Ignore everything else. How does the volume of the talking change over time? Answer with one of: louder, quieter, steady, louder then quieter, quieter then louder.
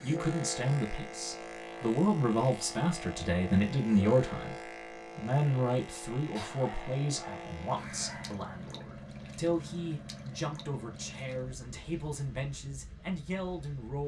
quieter.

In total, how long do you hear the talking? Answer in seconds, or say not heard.
14 s.